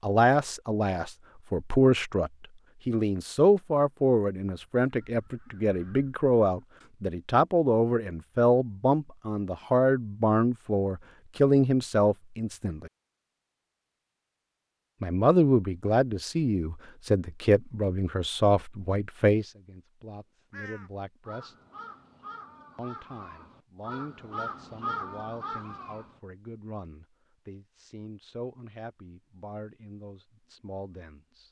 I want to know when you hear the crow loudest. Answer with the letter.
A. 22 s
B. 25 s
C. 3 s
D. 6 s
B.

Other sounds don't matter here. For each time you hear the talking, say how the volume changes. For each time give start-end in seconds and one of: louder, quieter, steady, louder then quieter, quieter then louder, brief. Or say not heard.
0.0-12.9 steady
15.0-21.6 quieter
22.8-31.4 steady.